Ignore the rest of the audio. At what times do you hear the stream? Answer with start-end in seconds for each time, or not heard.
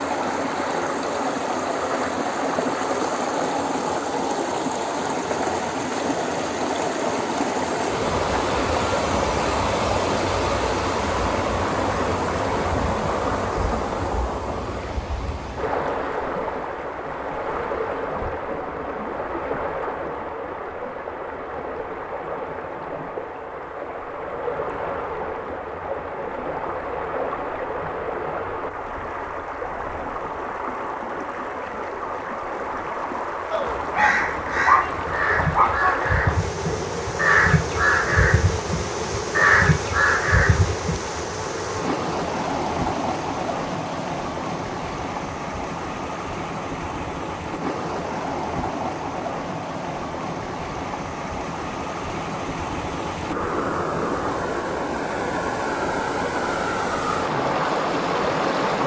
0.0-58.8.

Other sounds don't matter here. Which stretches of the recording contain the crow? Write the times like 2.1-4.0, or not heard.
33.5-41.2.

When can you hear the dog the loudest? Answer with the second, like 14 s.
35 s.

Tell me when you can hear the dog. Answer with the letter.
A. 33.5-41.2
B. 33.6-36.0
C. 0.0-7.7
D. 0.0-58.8
B.